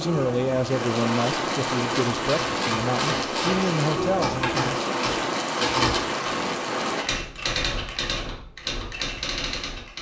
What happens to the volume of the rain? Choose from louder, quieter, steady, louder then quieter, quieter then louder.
steady.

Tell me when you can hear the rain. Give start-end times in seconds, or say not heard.
0.0-7.0.